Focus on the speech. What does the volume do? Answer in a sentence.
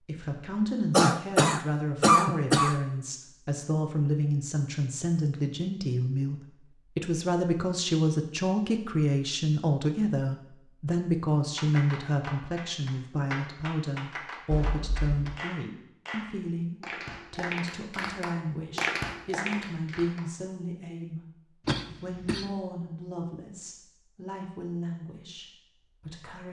The loudness of the speech goes down.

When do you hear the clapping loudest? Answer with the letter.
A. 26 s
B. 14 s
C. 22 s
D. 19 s
D.